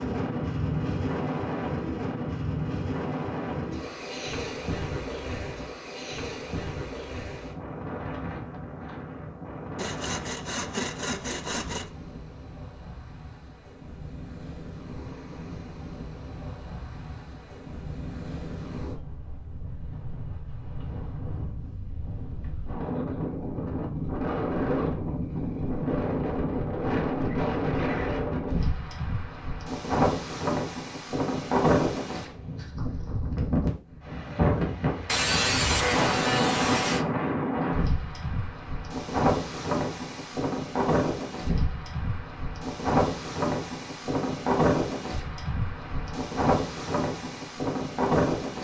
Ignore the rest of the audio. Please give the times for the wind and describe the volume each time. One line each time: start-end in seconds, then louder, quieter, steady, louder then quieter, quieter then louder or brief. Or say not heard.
0.0-48.5 quieter then louder.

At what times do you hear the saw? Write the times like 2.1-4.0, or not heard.
9.8-11.9, 35.0-37.0.